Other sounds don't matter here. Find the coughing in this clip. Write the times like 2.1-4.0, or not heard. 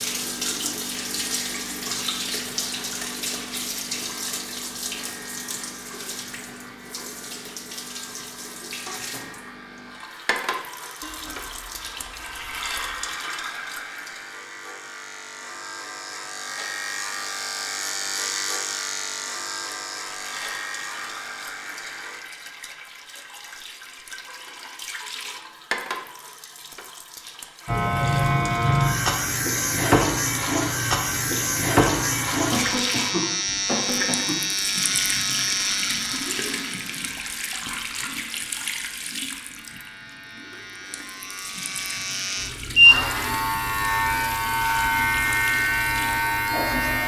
32.5-34.4.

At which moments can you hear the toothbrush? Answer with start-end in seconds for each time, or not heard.
11.0-13.1.